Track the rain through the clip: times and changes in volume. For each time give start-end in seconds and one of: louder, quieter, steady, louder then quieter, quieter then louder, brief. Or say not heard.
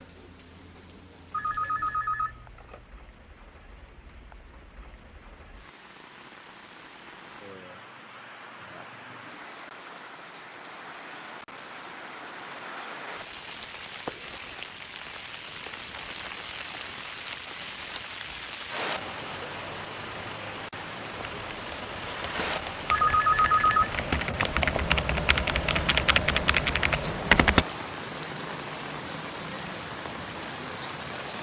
0.0-31.3 louder.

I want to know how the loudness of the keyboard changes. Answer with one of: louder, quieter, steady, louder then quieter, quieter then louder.
louder.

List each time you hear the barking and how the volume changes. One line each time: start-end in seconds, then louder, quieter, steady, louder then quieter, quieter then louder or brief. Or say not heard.
not heard.